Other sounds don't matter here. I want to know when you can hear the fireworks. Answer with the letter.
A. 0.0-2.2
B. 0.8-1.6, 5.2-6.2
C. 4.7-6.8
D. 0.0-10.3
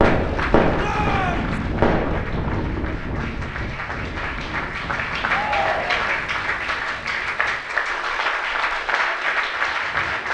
A.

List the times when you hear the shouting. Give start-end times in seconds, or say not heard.
0.8-1.6, 5.2-6.2.